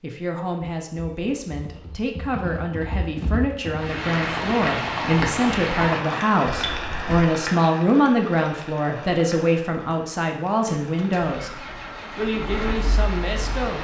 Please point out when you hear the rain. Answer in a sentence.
The rain can be heard from 3.7 to 13.7 s.